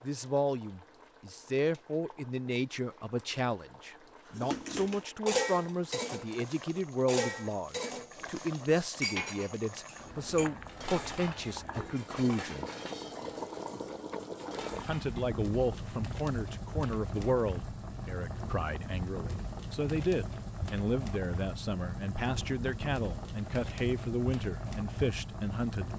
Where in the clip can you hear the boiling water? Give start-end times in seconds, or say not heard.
0.0-25.9.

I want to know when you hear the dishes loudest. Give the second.
5 s.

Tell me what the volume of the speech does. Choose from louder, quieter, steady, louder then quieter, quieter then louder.
steady.